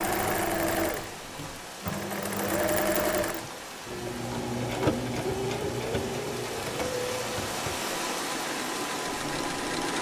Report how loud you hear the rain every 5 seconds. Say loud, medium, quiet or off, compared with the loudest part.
medium, loud.